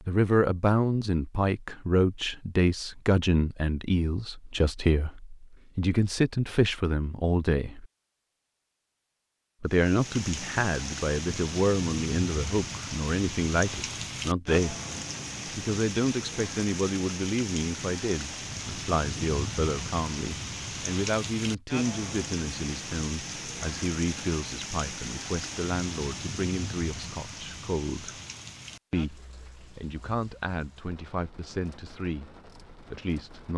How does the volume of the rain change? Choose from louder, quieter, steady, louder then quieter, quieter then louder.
quieter.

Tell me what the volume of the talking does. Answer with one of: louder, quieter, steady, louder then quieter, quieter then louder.
quieter.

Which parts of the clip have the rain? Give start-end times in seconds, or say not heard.
9.7-33.5.